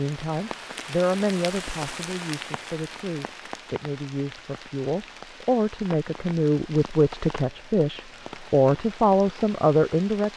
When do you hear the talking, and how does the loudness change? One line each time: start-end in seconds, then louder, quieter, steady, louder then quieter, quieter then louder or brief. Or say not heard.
0.0-10.3 quieter then louder.